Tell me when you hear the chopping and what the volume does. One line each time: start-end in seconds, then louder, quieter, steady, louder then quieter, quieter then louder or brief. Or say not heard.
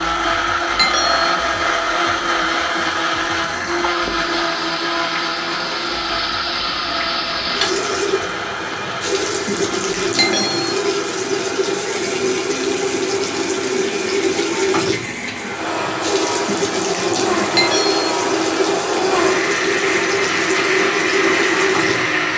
not heard.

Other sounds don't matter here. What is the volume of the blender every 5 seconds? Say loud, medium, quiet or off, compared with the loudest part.
loud, medium, medium, loud, loud.